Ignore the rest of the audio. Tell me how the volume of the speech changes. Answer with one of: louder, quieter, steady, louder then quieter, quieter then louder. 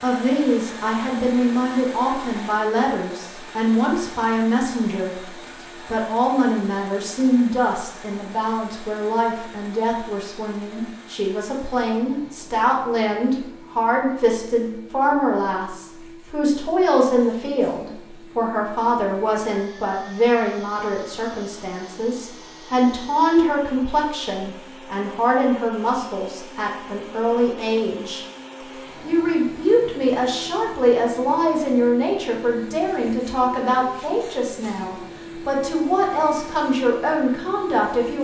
steady.